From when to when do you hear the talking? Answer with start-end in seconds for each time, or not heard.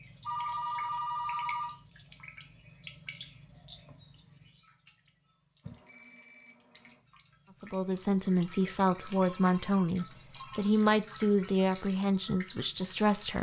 7.6-13.3.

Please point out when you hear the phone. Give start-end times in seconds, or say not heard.
0.2-1.8, 5.6-7.0, 9.1-10.7.